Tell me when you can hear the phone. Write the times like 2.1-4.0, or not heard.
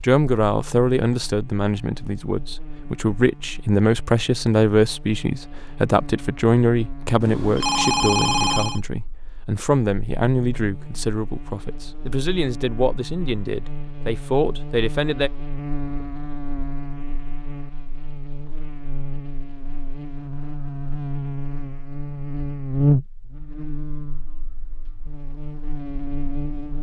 7.2-8.8.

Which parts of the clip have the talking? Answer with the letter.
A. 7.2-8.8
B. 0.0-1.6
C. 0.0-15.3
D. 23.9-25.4
C.